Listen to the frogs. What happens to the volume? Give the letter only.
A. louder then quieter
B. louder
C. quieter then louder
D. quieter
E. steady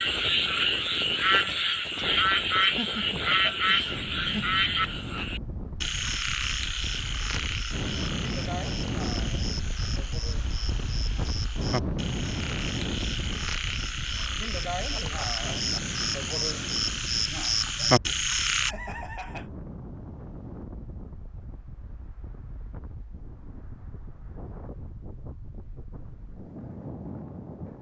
C.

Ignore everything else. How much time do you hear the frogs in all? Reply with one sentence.
You can hear the frogs for 19 seconds altogether.